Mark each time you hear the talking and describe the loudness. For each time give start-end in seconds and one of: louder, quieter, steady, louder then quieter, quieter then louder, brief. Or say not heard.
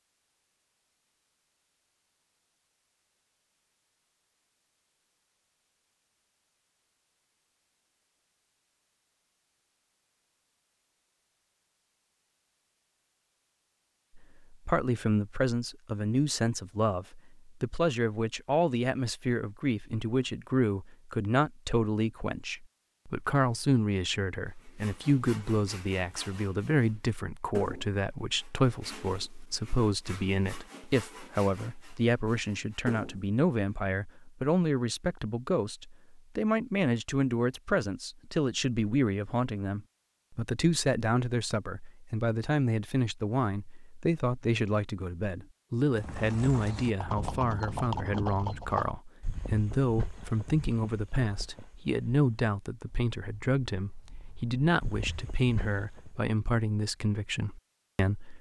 14.2-58.3 steady.